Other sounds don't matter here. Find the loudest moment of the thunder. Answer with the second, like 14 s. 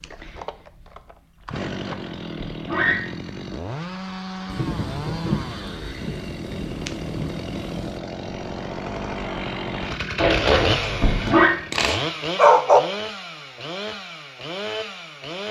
5 s.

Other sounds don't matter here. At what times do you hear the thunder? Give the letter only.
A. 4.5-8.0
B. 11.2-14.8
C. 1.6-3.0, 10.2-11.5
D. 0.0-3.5
A.